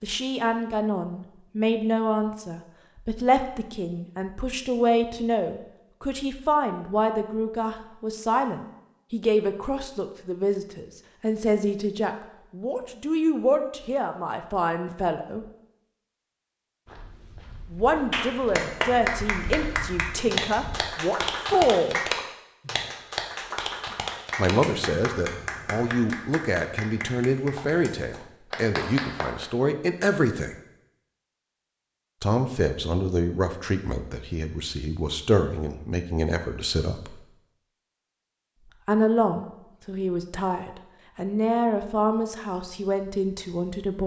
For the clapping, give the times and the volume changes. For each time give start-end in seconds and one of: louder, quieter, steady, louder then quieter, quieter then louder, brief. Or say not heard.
18.1-29.4 quieter.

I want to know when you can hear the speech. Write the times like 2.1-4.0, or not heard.
0.0-15.4, 17.7-22.0, 24.4-30.6, 32.2-37.2, 38.9-44.0.